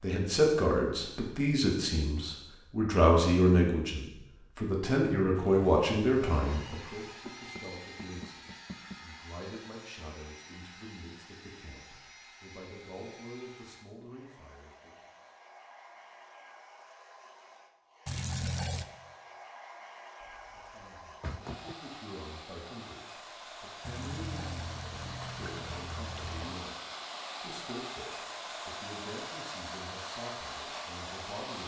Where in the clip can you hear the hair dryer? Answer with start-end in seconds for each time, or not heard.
6.2-31.6.